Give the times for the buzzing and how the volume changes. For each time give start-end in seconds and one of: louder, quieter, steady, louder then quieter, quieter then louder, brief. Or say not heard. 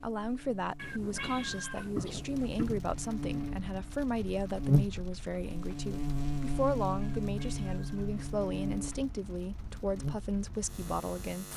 0.0-11.5 louder then quieter.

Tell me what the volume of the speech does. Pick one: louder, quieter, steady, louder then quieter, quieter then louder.
steady.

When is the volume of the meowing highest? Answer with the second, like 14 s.
2 s.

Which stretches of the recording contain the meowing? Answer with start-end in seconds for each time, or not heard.
0.8-2.8, 7.0-8.1.